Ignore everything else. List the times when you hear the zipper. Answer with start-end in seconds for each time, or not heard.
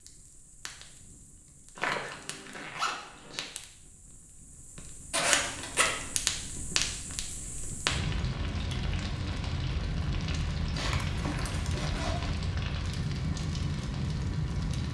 1.8-3.5, 5.1-6.2, 10.7-12.3.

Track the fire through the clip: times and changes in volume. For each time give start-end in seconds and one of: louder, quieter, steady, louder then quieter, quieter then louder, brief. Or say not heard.
0.0-14.8 louder.